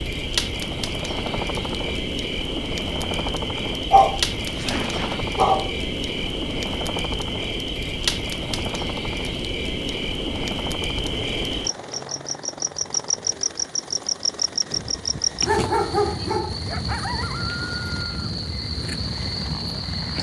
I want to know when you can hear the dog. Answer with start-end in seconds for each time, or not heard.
3.9-5.7, 14.7-16.6.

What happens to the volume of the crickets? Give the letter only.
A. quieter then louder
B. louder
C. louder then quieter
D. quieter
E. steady
E.